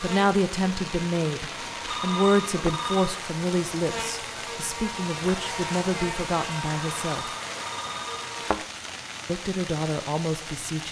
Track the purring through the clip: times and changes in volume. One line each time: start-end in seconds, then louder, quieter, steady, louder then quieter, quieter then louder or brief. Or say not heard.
not heard.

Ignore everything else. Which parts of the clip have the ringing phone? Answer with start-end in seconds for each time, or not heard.
1.8-3.1, 6.8-8.3.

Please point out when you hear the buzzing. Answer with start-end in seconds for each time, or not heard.
0.0-8.6.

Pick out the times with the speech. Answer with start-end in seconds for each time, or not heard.
0.0-7.3, 9.2-10.8.